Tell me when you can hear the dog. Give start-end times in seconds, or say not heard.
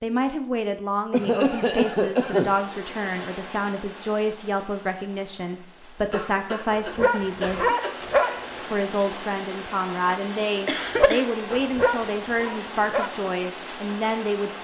6.7-8.4, 10.9-13.1.